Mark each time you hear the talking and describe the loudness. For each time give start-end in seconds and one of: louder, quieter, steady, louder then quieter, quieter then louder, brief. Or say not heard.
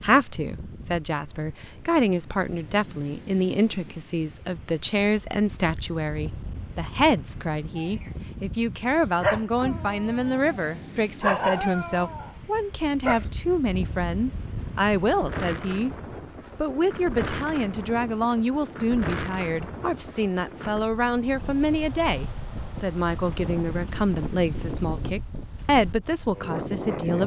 0.0-15.9 steady
16.6-27.2 steady.